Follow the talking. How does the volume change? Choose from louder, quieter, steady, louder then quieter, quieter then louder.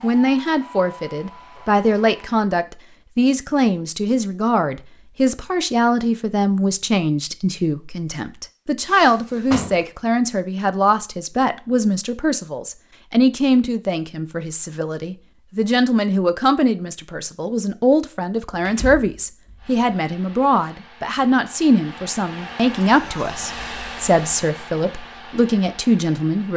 steady.